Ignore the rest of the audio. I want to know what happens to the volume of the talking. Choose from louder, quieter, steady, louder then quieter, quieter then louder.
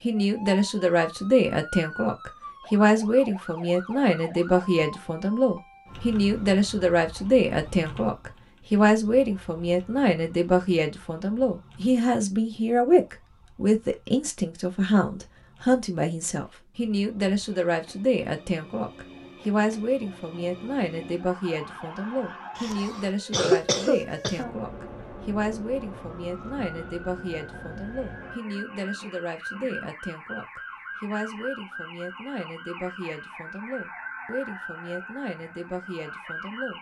quieter.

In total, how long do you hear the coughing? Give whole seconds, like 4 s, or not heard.
2 s.